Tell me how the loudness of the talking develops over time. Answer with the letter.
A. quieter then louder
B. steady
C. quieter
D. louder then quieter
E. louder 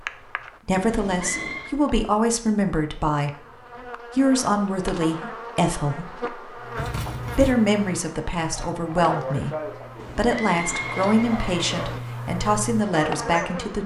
B.